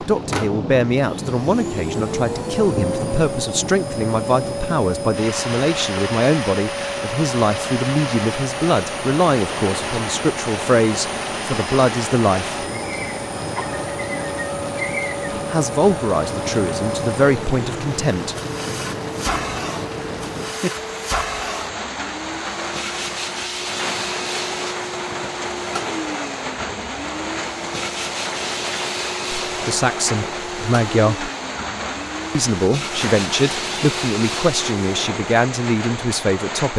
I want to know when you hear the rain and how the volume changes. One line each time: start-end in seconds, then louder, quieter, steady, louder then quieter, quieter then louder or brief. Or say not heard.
0.0-36.7 steady.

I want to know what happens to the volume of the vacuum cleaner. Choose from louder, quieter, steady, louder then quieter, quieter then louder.
steady.